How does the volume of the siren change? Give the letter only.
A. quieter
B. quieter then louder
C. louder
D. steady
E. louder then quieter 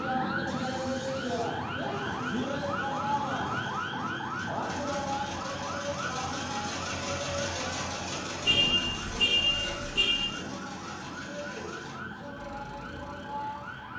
A.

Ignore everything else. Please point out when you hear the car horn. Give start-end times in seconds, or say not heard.
8.4-10.3.